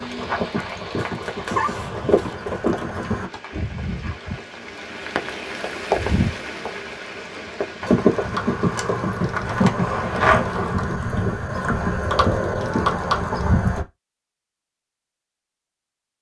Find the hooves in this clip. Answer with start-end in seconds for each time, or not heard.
0.0-3.3, 7.8-13.8.